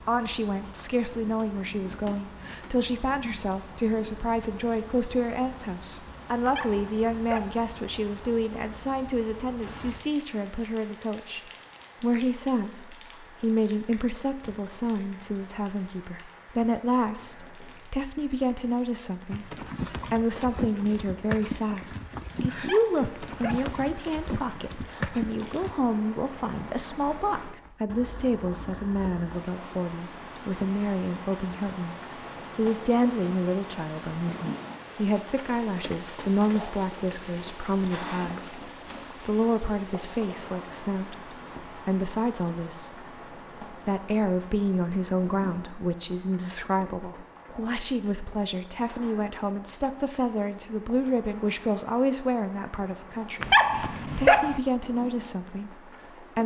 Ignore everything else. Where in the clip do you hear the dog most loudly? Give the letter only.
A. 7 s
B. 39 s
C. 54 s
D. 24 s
C.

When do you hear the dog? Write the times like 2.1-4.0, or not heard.
6.5-7.7, 22.6-23.8, 53.4-54.6.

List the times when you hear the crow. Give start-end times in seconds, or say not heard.
not heard.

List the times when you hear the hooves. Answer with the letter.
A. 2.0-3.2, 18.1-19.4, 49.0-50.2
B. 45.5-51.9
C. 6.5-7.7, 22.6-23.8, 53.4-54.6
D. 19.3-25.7
D.